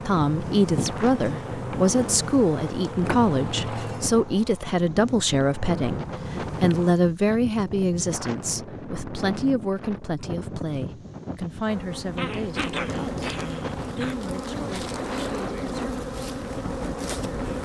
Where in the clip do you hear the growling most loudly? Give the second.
13 s.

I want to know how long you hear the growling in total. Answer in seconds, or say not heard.
2 s.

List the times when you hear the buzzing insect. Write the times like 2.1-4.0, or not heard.
0.0-7.0, 11.7-17.6.